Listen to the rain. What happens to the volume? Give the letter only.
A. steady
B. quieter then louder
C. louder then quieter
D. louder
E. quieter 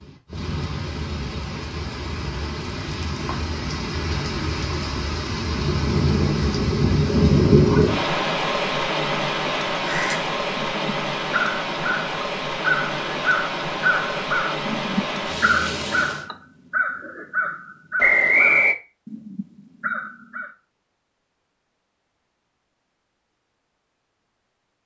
C.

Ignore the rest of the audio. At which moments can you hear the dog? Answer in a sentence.
The dog can't be heard in this clip.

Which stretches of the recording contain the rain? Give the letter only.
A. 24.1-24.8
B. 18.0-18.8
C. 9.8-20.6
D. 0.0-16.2
D.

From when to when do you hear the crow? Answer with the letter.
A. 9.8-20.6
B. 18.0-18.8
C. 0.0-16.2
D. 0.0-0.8
A.